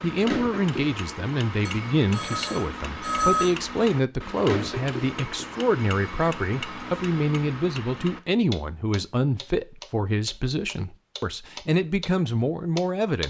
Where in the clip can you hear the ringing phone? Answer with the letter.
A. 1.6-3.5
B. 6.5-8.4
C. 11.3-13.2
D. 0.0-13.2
A.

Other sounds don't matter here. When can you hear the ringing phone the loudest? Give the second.
3 s.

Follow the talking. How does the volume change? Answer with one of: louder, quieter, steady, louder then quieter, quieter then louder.
steady.